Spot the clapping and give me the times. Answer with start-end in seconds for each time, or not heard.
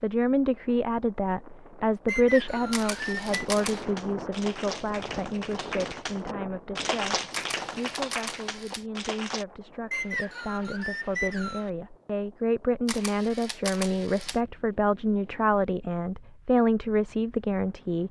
3.0-9.4.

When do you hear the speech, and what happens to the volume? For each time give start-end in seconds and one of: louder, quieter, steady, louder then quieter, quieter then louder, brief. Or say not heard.
0.0-18.0 quieter then louder.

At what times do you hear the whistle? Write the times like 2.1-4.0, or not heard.
2.0-3.4, 9.9-11.7.